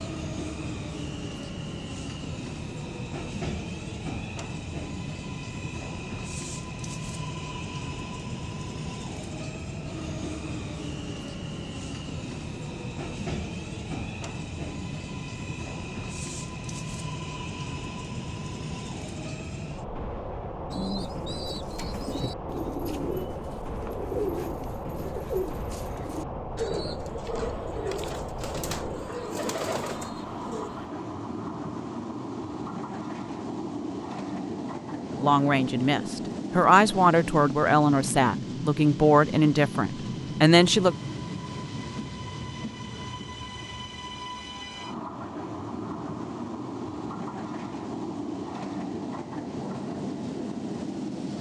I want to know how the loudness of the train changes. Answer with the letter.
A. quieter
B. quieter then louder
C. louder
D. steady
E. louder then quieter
D.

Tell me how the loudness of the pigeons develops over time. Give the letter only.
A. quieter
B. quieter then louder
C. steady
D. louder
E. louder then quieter
C.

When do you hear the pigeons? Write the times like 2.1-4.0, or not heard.
20.7-30.9.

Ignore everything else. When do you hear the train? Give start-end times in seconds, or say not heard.
0.0-51.3.